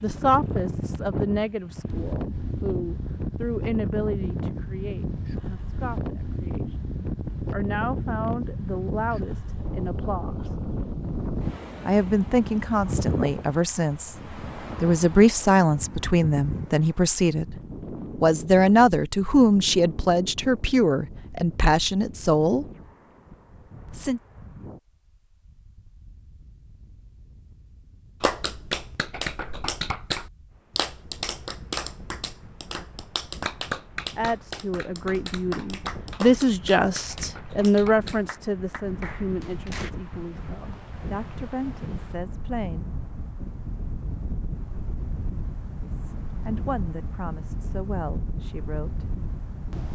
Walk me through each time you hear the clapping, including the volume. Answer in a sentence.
The clapping can be heard from 28.2 to 39.9 s, getting quieter.